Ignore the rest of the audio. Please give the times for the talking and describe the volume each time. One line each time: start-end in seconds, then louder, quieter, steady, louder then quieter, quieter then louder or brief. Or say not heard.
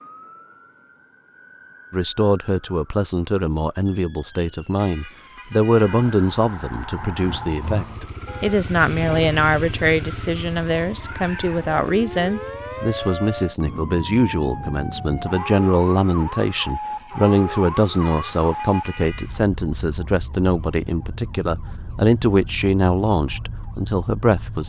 1.9-24.6 steady.